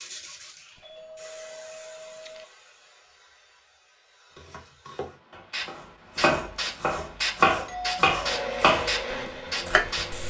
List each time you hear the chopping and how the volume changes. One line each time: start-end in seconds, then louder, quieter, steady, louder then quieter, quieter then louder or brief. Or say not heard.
4.3-10.2 louder then quieter.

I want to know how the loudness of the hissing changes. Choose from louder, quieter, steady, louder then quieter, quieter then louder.
quieter then louder.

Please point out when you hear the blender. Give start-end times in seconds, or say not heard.
8.2-10.2.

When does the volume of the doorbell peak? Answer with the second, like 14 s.
8 s.